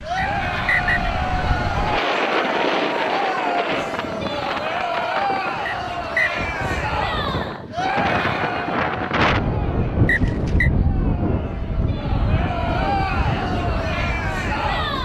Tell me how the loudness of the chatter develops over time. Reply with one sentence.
The volume of the chatter goes down, then up.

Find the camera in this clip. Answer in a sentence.
You can't hear the camera here.